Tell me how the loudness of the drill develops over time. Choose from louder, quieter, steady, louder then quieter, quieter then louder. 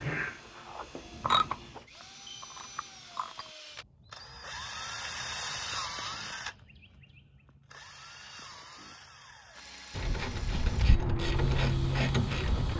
louder then quieter.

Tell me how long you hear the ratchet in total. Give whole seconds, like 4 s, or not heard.
6 s.